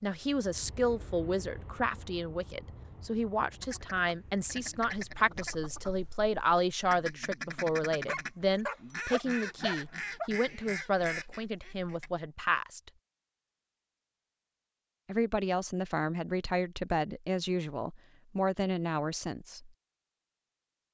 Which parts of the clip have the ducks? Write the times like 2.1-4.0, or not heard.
3.4-12.2.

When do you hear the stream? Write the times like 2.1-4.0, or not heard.
not heard.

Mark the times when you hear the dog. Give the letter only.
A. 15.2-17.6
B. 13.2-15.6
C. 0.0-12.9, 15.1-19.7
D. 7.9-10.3
D.